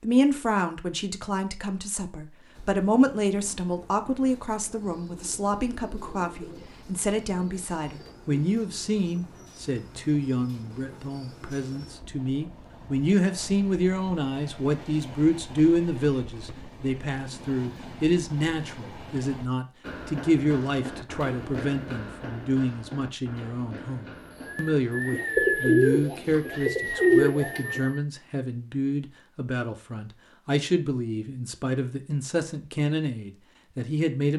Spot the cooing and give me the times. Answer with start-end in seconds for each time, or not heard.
4.8-8.6, 24.4-27.9.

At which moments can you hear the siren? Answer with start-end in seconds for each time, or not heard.
not heard.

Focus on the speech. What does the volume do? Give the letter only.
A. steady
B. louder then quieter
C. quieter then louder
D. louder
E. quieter
A.